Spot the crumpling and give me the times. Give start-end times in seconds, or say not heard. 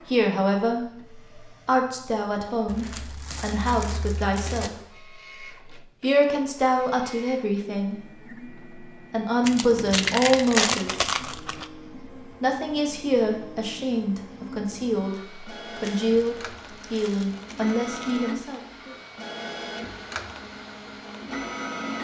2.6-4.7, 9.4-11.7, 15.8-18.2.